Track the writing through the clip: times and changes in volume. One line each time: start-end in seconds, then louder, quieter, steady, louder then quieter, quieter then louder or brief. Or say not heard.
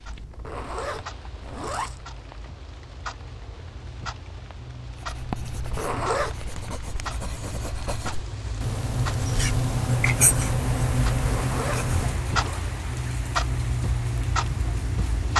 5.0-12.2 louder.